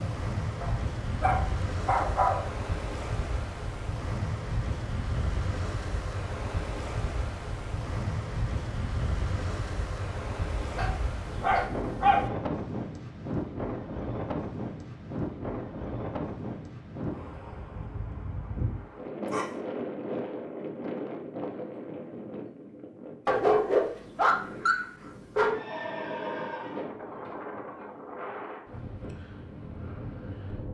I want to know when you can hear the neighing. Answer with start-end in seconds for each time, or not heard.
25.5-26.9.